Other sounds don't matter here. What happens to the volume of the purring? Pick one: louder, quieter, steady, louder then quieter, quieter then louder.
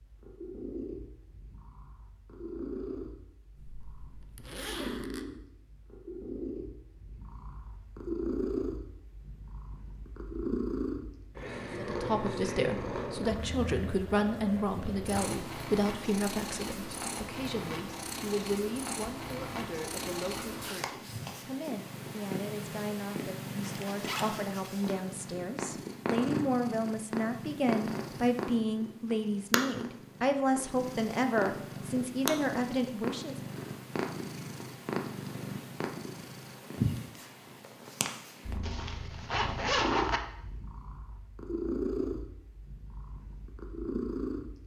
steady.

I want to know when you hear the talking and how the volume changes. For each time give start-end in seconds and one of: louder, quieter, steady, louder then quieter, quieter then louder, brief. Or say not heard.
11.8-33.4 quieter then louder.